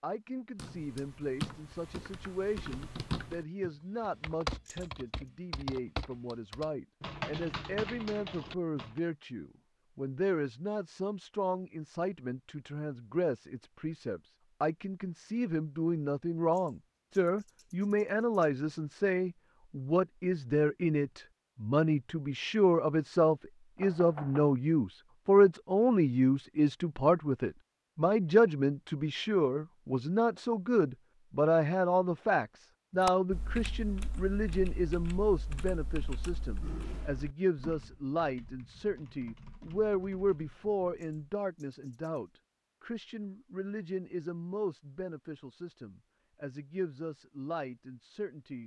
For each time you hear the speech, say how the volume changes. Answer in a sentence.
The speech can be heard from 0.0 to 48.6 s, getting louder then quieter.